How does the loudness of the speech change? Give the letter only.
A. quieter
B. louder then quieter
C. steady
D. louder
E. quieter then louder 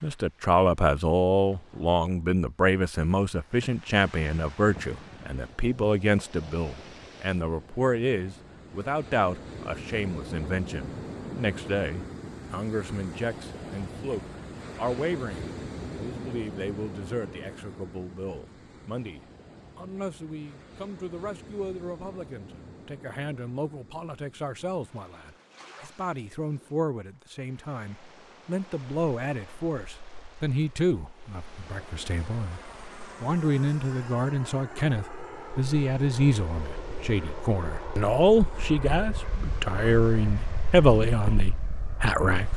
E.